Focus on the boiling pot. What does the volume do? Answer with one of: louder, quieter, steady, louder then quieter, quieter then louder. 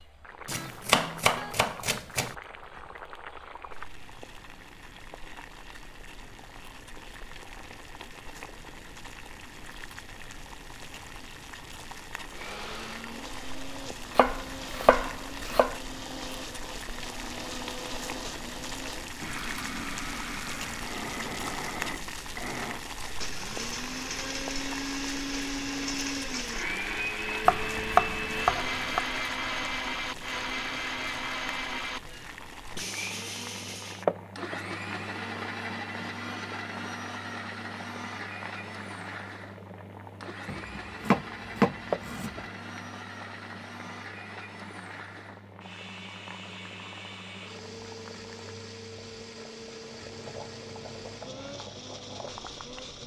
louder then quieter.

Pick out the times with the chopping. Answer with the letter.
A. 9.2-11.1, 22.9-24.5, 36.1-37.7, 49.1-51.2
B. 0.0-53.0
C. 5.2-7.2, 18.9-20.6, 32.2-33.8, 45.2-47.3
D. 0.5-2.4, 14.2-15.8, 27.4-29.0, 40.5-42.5
D.